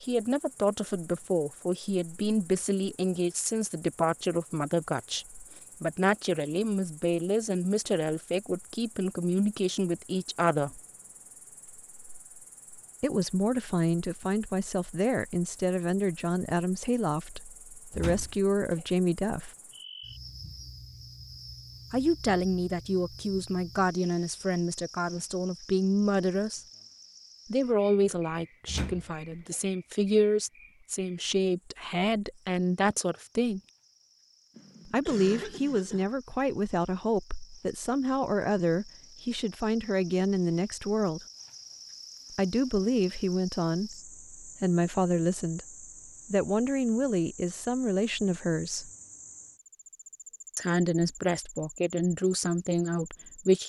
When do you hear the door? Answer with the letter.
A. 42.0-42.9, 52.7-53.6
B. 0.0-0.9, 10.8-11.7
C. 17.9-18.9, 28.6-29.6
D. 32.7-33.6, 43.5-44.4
C.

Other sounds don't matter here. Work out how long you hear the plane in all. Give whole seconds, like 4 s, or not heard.
not heard.